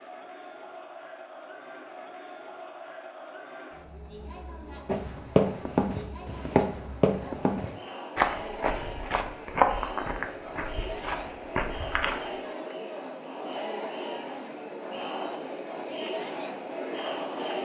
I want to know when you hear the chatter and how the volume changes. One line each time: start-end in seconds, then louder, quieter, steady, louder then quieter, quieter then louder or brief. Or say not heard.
0.0-17.6 louder.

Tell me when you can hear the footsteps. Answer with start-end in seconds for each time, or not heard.
4.8-12.3.